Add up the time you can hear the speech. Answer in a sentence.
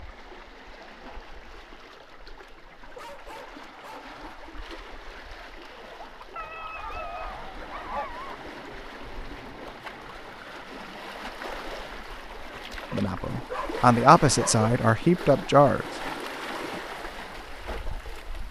You can hear the speech for 3 seconds altogether.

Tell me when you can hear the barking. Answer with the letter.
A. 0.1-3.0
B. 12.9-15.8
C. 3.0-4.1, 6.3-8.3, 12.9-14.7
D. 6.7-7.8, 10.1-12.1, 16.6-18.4
C.